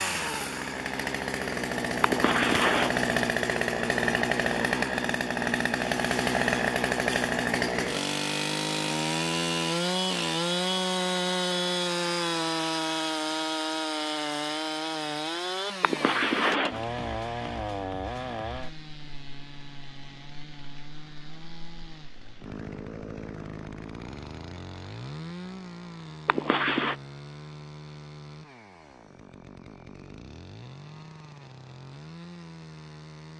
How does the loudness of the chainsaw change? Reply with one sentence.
The loudness of the chainsaw goes down.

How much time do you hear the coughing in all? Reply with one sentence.
The coughing can be heard for 3 seconds in total.